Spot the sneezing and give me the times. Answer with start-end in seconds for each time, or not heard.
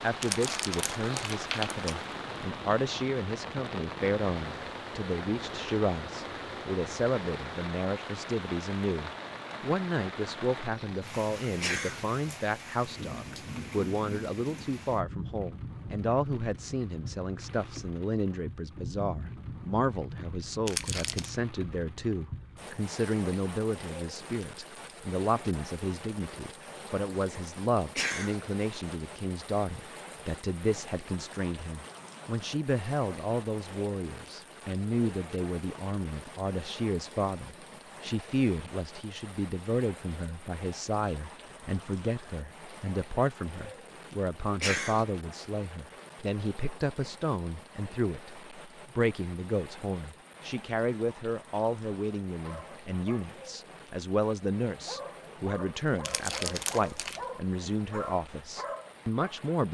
11.6-12.1, 27.9-28.4, 44.6-45.0.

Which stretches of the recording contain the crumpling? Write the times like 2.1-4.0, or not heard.
0.2-2.0, 20.6-21.3, 56.0-57.2.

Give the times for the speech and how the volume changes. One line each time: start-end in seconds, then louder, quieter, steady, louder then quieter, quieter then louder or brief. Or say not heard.
0.0-59.7 steady.